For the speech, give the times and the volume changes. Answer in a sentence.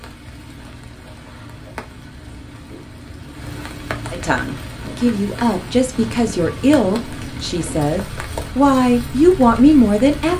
The speech can be heard from 4.1 to 10.3 s, getting louder.